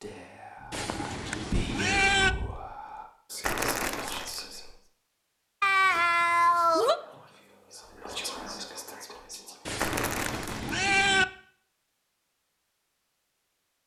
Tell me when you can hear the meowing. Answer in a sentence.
The meowing can be heard from 0.7 to 2.4 s, from 5.6 to 7.0 s and from 9.7 to 11.2 s.